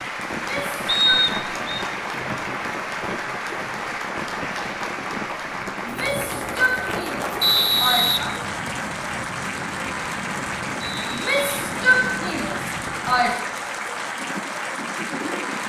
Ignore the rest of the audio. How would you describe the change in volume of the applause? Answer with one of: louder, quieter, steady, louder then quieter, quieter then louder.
steady.